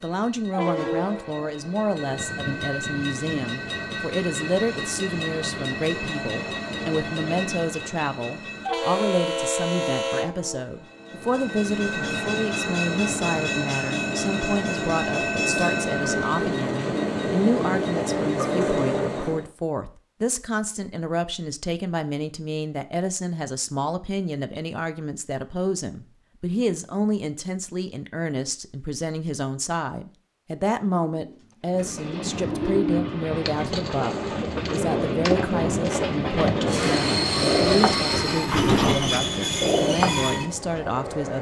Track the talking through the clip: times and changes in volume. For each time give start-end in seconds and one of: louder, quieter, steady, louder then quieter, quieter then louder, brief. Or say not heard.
0.0-41.3 steady.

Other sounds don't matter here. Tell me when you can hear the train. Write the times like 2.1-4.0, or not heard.
0.0-19.4, 31.6-41.3.